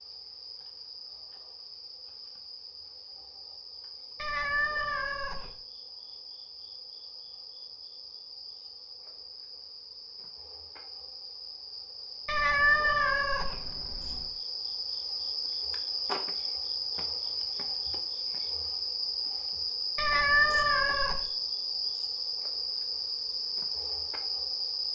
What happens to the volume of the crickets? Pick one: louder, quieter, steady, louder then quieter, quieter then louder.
louder.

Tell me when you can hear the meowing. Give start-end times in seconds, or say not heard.
4.2-5.5, 12.2-14.2, 19.9-21.2.